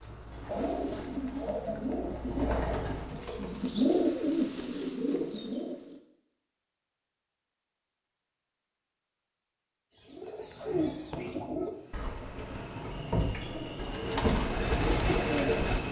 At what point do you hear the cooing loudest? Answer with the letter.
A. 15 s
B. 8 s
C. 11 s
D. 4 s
D.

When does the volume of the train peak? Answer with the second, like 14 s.
15 s.